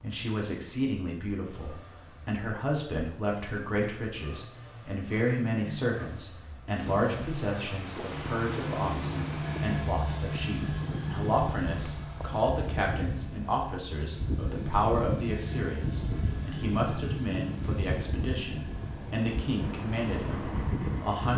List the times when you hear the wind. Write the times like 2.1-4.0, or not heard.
6.8-21.3.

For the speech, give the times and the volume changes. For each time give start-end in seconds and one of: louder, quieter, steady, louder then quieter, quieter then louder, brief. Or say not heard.
0.0-21.3 steady.